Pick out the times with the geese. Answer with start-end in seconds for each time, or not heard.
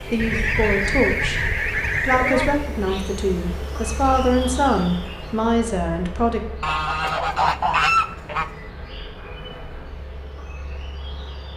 0.1-2.5, 6.6-8.5.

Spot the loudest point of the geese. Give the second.
8 s.